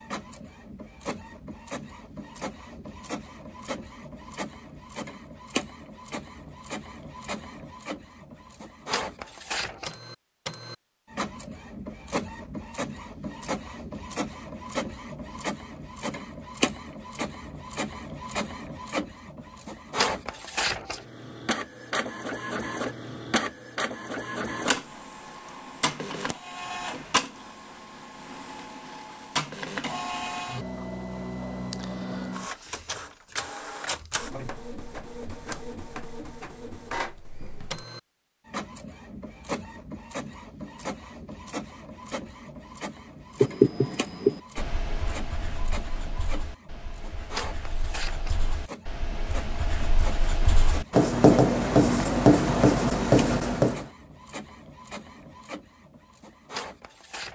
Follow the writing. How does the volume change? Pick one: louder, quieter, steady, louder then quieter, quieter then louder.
quieter then louder.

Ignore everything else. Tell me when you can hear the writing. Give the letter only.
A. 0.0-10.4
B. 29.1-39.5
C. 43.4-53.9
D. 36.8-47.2
C.